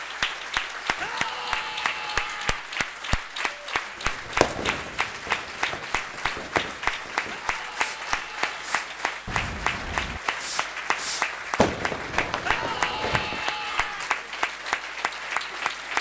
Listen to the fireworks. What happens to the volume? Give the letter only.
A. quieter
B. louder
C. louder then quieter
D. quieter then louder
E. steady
D.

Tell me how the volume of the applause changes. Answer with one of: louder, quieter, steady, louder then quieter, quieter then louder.
steady.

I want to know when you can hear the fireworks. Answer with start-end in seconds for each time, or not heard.
4.0-13.4.